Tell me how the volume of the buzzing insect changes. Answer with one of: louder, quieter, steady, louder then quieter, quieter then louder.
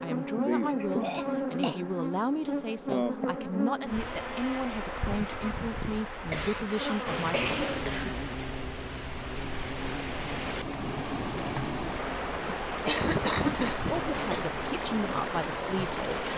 quieter.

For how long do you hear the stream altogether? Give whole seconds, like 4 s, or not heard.
9 s.